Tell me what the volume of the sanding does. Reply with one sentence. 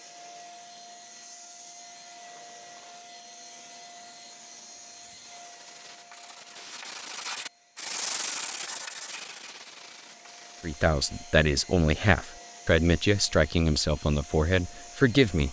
The loudness of the sanding goes up, then down.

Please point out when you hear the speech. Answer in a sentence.
The speech can be heard from 10.6 to 15.4 s.